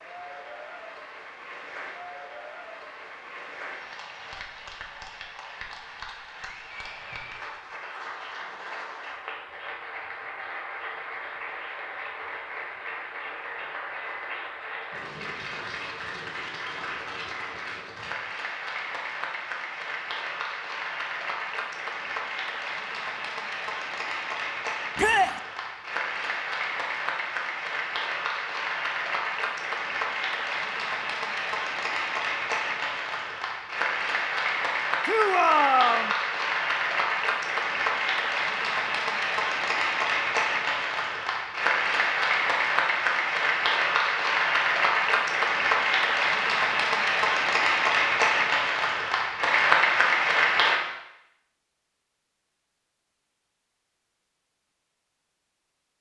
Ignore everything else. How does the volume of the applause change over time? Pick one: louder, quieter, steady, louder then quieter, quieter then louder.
louder.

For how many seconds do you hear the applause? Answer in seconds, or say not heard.
51 s.